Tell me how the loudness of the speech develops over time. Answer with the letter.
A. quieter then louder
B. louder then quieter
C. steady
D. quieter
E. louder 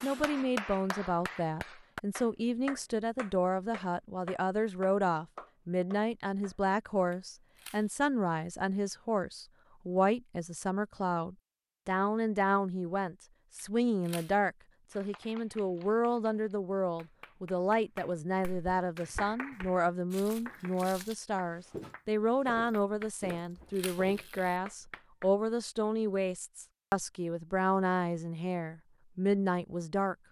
C.